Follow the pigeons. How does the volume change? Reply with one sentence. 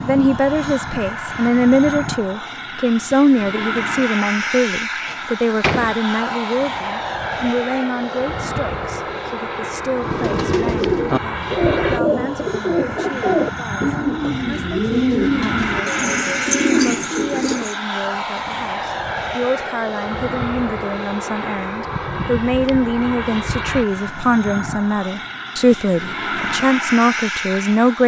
The loudness of the pigeons stays about the same.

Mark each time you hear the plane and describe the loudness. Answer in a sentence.
The plane can be heard from 0.0 to 28.0 s, at a steady volume.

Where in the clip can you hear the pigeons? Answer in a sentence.
You can hear the pigeons from 9.9 to 17.8 s.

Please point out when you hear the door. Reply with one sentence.
The door can be heard from 5.0 to 6.0 s.